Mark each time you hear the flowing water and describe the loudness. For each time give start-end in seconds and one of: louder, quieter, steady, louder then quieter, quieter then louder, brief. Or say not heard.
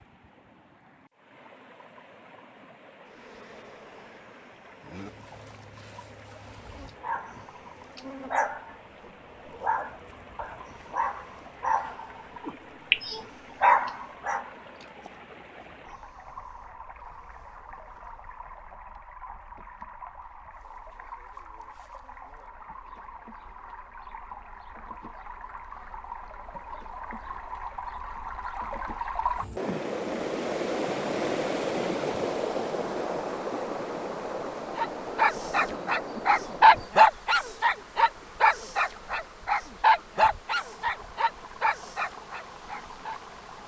0.0-43.6 louder then quieter.